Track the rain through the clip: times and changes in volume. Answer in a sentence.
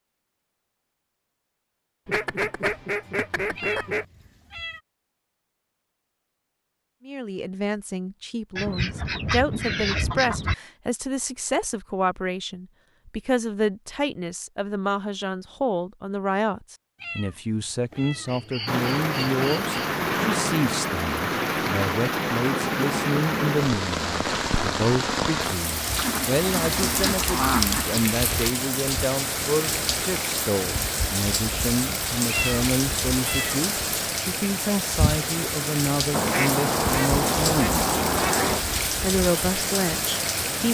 The rain can be heard from 18.6 to 40.6 s, at a steady volume.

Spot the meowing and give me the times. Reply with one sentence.
The meowing can be heard from 3.5 to 4.8 s, from 16.9 to 18.4 s and from 32.2 to 33.6 s.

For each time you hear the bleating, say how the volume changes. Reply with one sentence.
The bleating can't be heard in this clip.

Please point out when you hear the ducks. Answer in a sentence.
The ducks can be heard from 2.0 to 4.0 s, from 8.6 to 10.6 s, from 17.9 to 19.8 s, from 25.9 to 28.0 s and from 36.1 to 38.6 s.